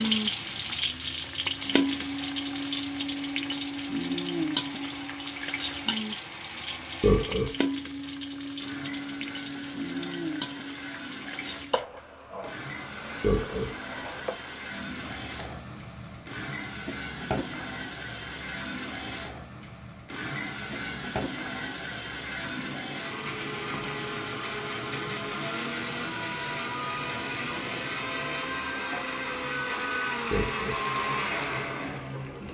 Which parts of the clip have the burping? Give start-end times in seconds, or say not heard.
7.0-7.5, 13.2-13.7, 30.3-30.8.